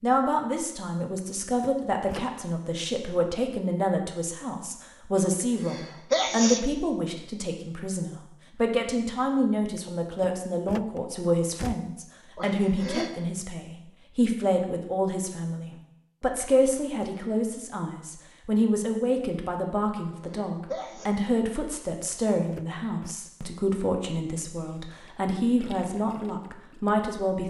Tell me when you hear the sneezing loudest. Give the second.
6 s.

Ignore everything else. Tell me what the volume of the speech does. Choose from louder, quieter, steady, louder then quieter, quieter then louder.
steady.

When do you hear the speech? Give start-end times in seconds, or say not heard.
0.0-27.4.